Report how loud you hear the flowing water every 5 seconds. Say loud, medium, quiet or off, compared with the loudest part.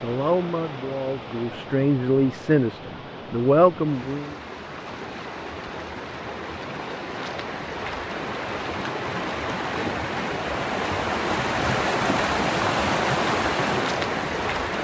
quiet, medium, loud.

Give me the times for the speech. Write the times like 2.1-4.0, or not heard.
0.0-4.3.